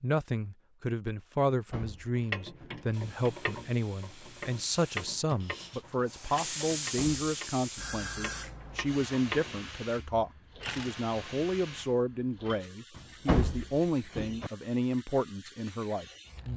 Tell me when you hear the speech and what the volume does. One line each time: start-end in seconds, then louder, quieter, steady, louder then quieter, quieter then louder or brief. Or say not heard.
0.0-16.5 steady.